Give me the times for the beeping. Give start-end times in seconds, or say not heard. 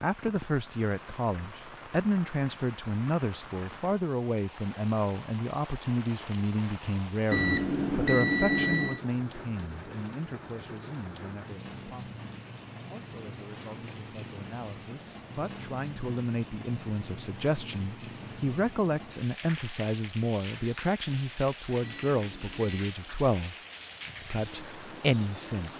7.3-9.0, 21.8-22.9.